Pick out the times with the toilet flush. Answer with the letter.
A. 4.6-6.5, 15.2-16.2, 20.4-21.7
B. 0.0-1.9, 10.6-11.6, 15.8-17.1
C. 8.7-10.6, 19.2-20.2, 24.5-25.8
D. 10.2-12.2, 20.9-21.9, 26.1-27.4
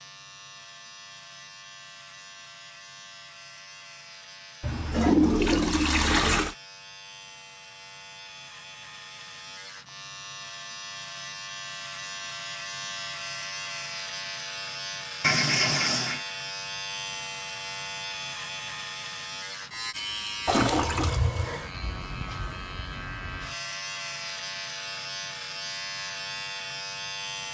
A.